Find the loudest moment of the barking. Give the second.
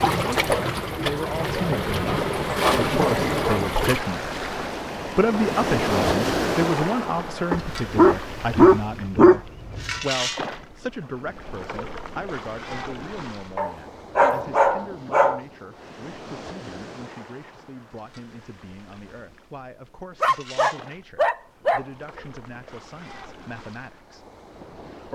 9 s.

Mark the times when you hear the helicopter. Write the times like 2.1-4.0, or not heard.
not heard.